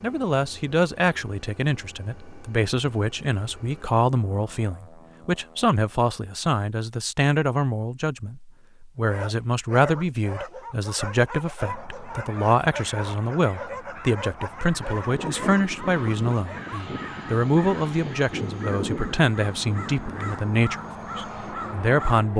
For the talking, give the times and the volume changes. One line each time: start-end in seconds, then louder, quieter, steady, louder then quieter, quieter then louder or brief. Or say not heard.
0.0-22.3 steady.